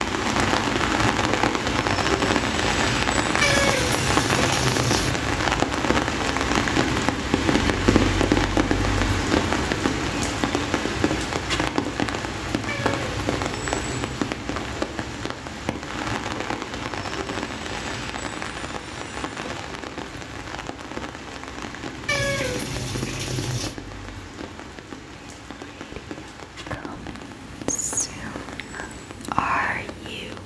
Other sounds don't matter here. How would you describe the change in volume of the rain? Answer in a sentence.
The loudness of the rain goes down.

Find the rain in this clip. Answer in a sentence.
You can hear the rain from 0.0 to 30.4 s.